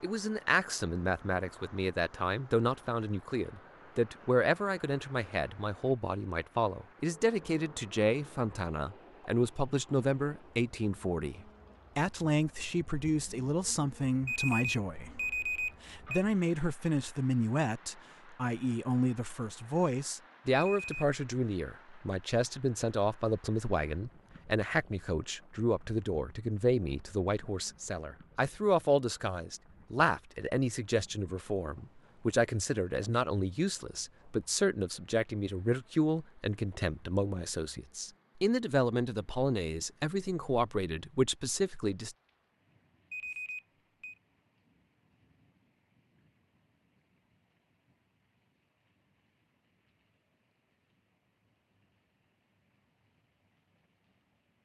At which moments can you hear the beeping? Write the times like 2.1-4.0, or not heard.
14.2-16.2, 20.5-21.1, 43.1-44.1.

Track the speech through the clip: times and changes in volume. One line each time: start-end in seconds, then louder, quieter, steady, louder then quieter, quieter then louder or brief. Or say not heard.
0.0-42.1 steady.